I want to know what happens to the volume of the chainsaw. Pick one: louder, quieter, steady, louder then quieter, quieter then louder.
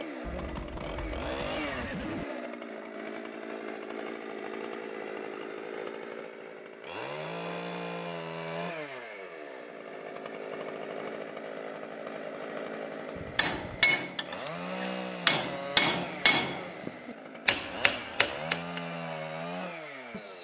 steady.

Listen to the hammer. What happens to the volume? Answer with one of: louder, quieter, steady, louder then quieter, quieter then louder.
quieter then louder.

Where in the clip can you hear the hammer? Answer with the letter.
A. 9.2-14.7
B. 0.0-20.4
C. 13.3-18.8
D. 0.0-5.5
C.